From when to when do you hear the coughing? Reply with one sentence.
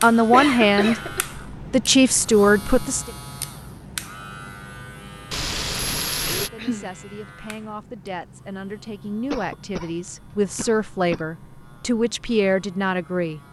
You can hear the coughing from 0.3 to 1.2 s, from 6.2 to 6.9 s and from 9.3 to 11.2 s.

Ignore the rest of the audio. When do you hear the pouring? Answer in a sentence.
The pouring can be heard from 5.3 to 6.5 s.